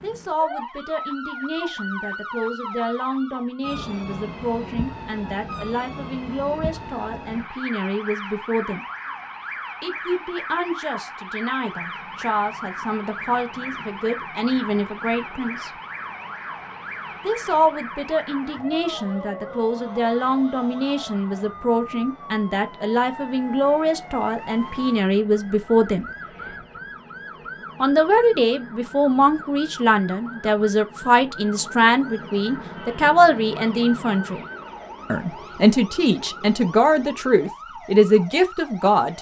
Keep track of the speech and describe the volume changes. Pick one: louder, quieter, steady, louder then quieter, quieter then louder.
louder.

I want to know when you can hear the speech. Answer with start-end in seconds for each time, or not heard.
0.0-8.8, 9.8-15.7, 17.2-26.1, 27.8-34.4, 35.1-39.1.